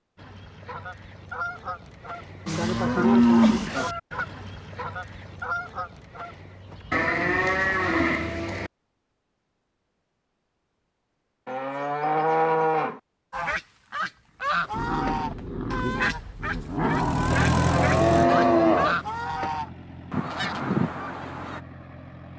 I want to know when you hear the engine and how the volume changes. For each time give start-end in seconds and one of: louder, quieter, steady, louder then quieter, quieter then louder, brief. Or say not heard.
16.9-22.3 quieter.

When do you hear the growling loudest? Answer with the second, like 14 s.
17 s.